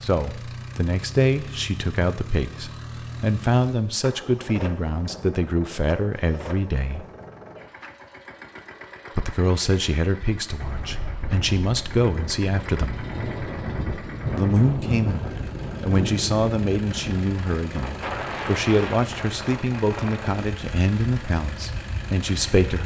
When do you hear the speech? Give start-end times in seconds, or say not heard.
0.0-7.0, 9.2-13.1, 14.3-22.8.